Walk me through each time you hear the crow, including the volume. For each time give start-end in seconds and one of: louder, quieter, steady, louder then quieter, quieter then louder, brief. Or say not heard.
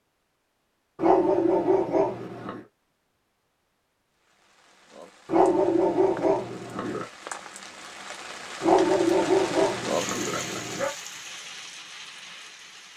not heard.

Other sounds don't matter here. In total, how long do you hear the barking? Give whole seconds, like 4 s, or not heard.
6 s.